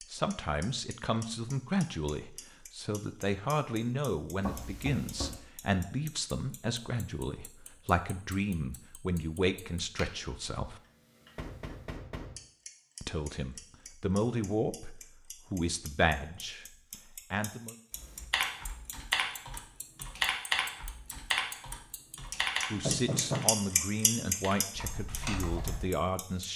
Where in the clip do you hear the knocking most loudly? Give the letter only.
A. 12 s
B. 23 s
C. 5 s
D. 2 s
B.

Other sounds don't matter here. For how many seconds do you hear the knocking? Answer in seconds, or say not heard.
3 s.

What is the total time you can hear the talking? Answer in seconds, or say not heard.
19 s.